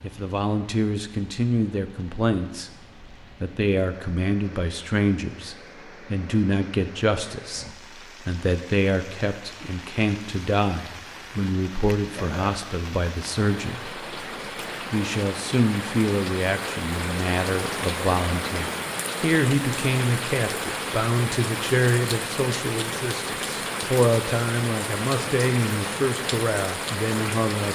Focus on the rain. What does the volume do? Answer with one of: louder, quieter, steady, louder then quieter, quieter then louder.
louder.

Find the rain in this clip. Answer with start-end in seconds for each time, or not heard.
0.0-27.7.